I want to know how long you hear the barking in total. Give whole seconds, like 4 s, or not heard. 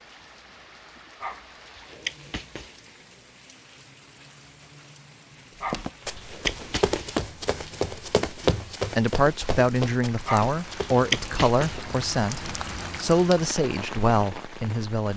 5 s.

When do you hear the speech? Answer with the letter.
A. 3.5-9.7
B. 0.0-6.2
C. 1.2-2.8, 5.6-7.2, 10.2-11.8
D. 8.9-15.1
D.